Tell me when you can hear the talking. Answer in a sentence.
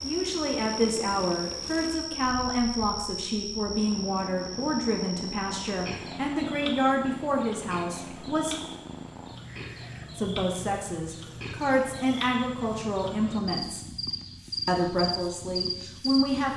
You can hear the talking from 0.0 to 8.7 s, from 10.2 to 13.8 s and from 14.7 to 16.5 s.